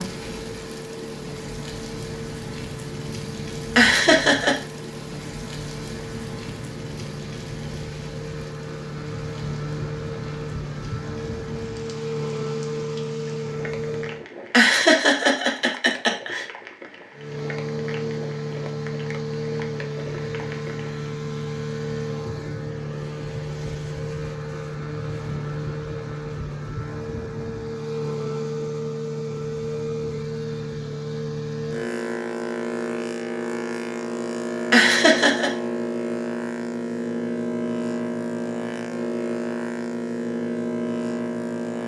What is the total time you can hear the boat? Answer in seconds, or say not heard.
39 s.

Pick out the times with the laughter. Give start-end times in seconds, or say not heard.
3.8-4.5, 14.5-16.4, 34.7-35.5.